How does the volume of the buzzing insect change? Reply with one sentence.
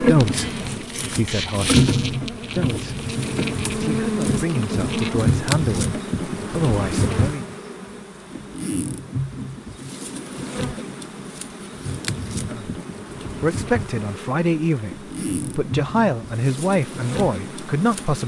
The volume of the buzzing insect goes down.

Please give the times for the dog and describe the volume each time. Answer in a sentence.
The dog can't be heard in this clip.